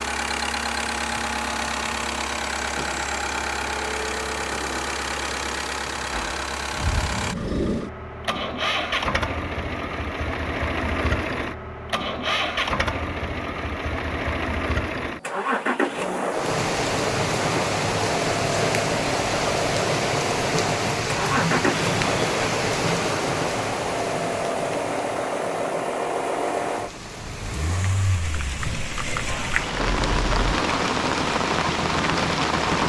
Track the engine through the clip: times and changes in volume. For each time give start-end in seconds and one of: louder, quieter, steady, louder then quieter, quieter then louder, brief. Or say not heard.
0.0-32.8 steady.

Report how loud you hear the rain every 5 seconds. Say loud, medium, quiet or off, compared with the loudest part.
off, off, off, loud, loud, medium, loud.